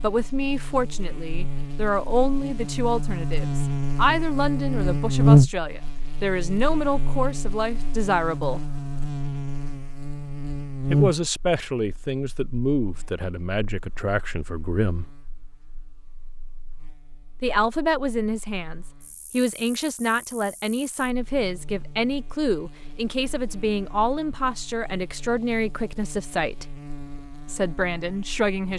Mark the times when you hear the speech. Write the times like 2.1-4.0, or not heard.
0.0-8.6, 10.9-15.1, 17.4-26.6, 27.4-28.7.